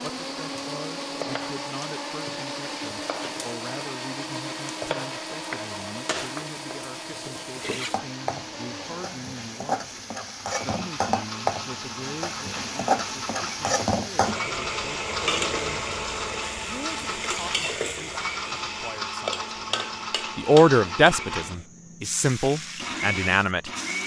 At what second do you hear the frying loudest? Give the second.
13 s.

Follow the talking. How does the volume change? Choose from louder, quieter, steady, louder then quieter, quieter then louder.
louder.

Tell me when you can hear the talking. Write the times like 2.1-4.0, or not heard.
0.0-10.0, 10.6-15.9, 16.6-23.7.